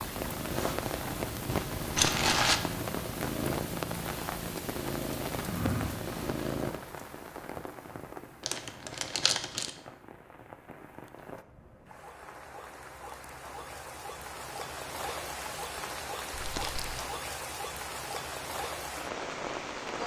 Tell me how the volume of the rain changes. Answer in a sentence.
The loudness of the rain goes down, then up.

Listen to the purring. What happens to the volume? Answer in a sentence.
The volume of the purring stays about the same.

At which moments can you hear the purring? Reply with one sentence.
You can hear the purring from 0.0 to 6.8 s.